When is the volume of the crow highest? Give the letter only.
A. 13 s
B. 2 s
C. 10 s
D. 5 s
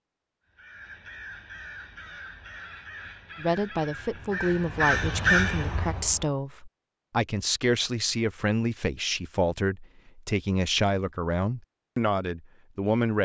D.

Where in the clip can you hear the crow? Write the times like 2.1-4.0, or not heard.
0.6-6.2.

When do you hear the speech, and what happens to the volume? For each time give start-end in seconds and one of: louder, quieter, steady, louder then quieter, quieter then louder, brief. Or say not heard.
3.4-13.2 steady.